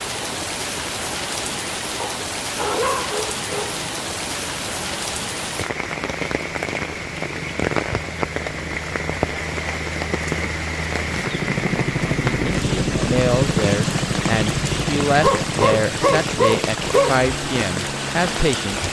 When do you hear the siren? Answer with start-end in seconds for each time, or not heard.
not heard.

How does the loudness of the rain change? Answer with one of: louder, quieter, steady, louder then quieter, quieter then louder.
steady.